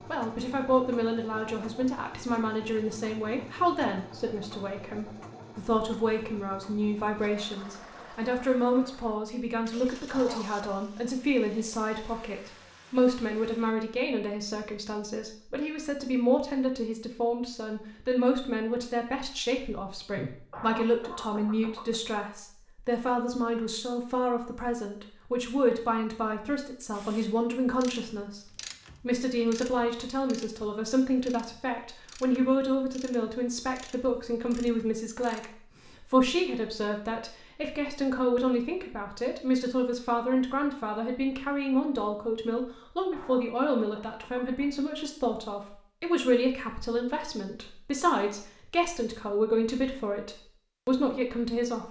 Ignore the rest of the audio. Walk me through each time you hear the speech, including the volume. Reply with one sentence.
The speech can be heard from 0.1 to 51.8 s, at a steady volume.